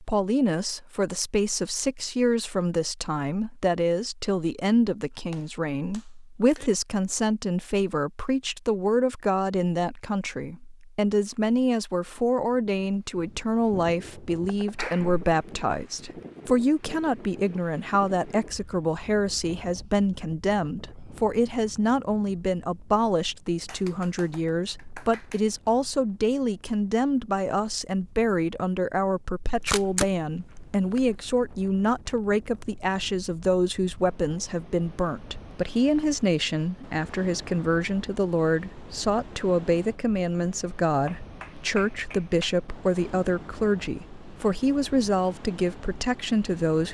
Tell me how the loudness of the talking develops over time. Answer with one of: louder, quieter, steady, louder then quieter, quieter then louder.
steady.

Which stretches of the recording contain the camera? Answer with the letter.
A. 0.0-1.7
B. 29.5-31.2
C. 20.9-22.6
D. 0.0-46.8
B.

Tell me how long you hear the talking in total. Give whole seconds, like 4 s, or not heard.
47 s.